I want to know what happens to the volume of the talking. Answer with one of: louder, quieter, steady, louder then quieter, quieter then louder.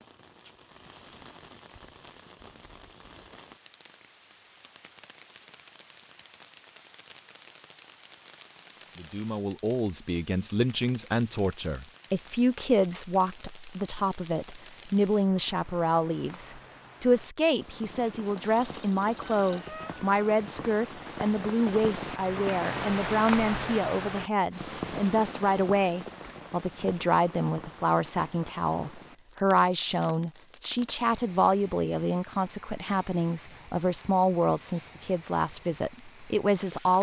steady.